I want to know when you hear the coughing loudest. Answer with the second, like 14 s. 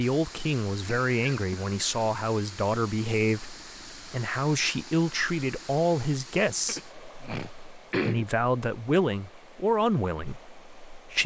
8 s.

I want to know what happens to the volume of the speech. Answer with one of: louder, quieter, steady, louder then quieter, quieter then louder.
steady.